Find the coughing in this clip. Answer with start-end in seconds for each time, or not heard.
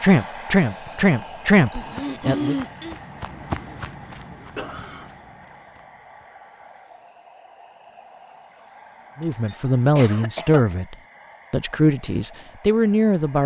1.7-3.0, 4.5-5.0, 9.2-10.7.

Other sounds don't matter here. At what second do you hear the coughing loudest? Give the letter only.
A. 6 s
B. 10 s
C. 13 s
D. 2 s
D.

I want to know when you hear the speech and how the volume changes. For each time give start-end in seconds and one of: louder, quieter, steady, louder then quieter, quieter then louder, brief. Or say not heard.
0.0-2.5 brief
9.2-13.4 quieter then louder.